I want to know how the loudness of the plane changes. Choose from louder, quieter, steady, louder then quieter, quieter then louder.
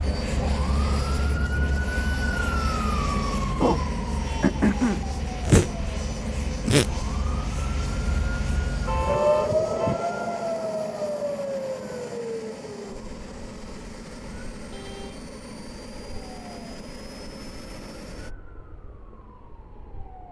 quieter.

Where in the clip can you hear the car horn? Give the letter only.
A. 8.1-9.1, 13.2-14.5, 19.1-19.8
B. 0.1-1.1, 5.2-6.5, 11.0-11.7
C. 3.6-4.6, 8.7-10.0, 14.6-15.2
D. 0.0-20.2
C.